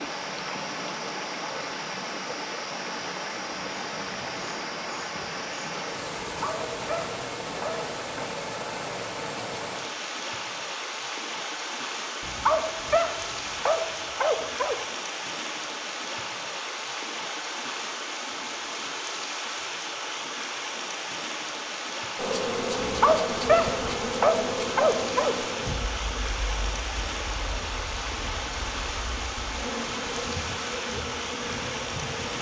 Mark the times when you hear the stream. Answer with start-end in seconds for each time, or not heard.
0.0-32.3.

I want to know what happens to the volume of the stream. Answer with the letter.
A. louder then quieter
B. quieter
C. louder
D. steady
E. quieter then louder
D.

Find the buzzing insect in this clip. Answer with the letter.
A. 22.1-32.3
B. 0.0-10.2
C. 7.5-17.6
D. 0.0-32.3
A.